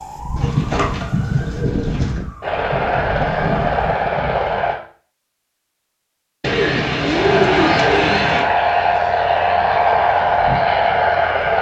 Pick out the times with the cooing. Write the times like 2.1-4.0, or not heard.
0.3-2.2, 6.4-8.4.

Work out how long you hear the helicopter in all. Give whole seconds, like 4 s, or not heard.
7 s.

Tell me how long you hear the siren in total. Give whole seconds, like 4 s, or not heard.
4 s.